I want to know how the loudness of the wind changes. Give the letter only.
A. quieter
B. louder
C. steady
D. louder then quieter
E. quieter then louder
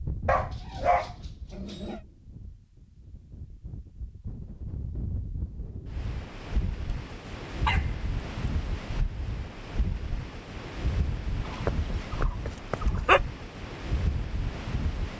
B.